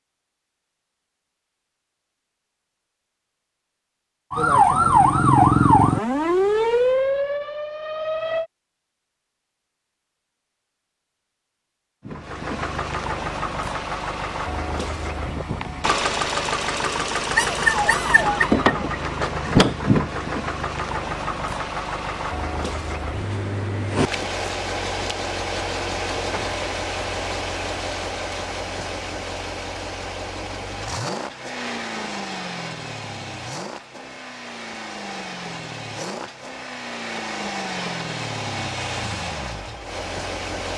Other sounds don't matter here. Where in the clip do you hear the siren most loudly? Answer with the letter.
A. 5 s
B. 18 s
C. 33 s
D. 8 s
A.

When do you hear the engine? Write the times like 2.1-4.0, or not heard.
12.1-40.7.